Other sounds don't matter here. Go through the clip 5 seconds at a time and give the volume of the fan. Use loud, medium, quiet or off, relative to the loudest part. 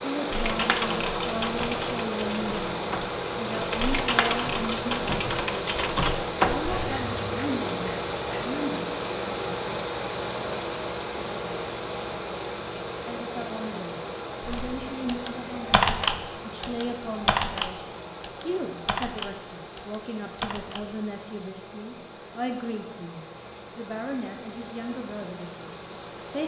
loud, loud, loud, medium, quiet, medium.